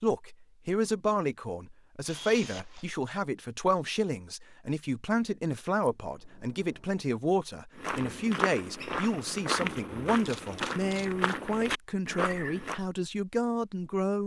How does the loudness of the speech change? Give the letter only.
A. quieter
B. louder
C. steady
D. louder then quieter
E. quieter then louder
C.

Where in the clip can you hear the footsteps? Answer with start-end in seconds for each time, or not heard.
7.8-12.8.